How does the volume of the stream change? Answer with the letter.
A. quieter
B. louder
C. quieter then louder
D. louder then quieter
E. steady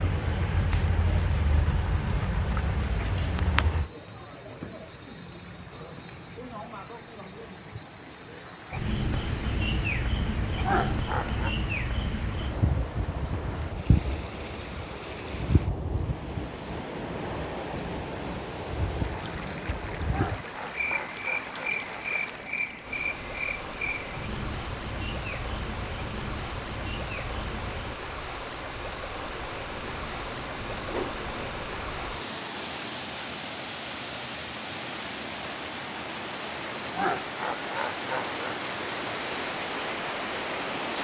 B.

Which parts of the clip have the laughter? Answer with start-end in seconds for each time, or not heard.
10.6-11.5, 20.1-21.9, 37.0-38.5.